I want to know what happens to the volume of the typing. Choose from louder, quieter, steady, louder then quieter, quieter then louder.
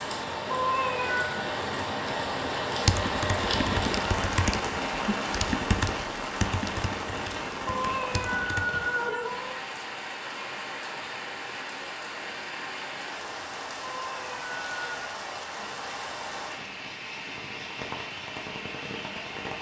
quieter.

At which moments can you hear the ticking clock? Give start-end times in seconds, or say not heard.
not heard.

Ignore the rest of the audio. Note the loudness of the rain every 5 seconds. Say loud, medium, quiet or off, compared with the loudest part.
loud, loud, medium, medium.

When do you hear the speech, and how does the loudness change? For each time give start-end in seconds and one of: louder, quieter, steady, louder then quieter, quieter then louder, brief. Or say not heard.
not heard.